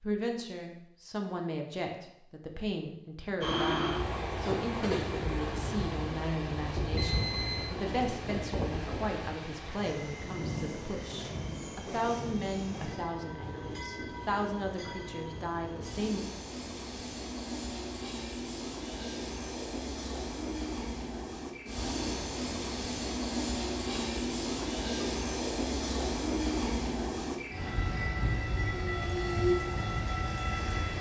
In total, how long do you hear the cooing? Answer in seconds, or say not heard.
not heard.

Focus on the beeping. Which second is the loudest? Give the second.
7 s.